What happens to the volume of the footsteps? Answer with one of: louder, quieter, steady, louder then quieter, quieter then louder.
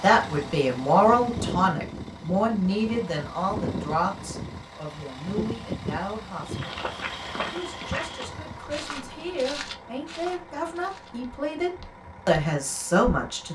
quieter.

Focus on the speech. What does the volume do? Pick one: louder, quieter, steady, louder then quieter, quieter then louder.
quieter then louder.